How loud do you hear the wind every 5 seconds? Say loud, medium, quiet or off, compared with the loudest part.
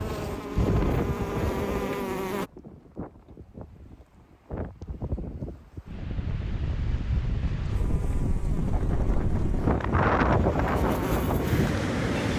medium, medium, loud.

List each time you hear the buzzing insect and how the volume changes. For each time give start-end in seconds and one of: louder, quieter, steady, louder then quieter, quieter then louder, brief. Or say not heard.
0.0-2.5 brief
7.7-12.3 louder.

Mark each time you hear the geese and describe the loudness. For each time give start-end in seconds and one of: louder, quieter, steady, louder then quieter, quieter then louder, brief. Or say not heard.
not heard.